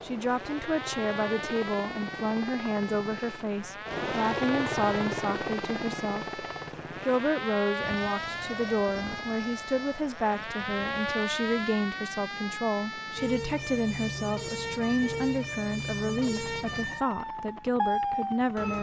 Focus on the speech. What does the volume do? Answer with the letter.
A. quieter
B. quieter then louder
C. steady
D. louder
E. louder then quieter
C.